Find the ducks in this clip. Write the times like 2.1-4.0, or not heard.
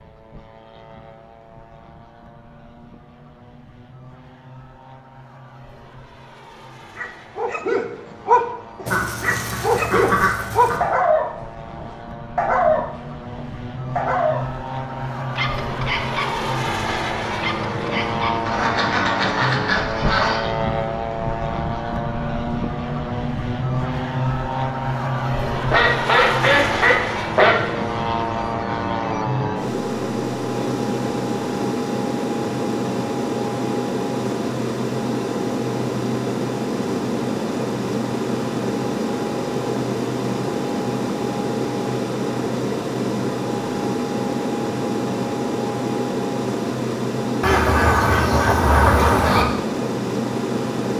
8.8-10.8, 18.4-20.4, 25.7-27.6, 47.4-49.5.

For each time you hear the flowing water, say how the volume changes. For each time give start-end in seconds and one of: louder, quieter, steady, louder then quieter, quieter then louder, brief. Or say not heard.
not heard.